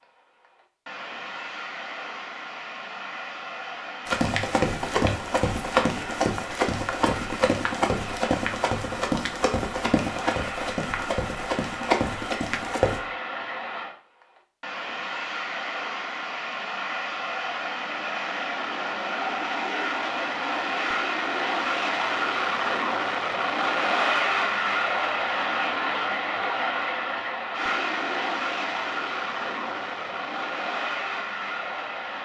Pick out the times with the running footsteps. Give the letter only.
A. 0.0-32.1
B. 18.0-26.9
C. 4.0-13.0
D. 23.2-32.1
C.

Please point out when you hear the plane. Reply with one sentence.
The plane can be heard from 0.0 to 32.1 s.